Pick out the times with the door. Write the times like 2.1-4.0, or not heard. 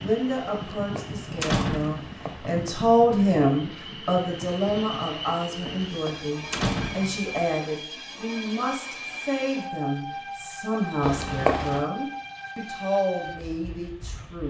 0.8-2.8, 5.8-7.3, 11.0-11.8.